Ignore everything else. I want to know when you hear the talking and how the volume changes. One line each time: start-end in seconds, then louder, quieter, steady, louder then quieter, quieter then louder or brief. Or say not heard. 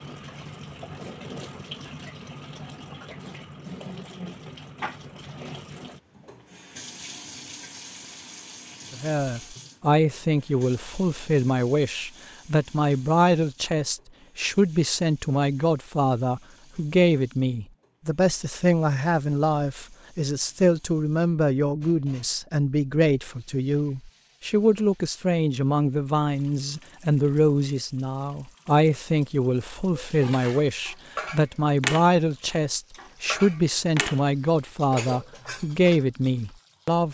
8.9-37.0 steady.